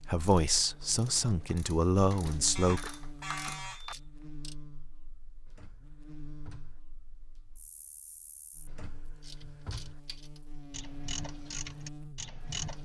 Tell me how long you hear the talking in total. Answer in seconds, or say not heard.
3 s.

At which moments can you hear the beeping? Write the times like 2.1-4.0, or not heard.
2.5-4.0.